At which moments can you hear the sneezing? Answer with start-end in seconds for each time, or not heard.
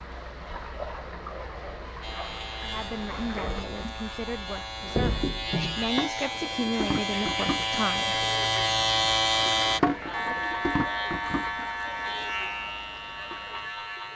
not heard.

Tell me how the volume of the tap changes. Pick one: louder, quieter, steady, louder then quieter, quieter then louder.
louder then quieter.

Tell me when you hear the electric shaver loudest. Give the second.
9 s.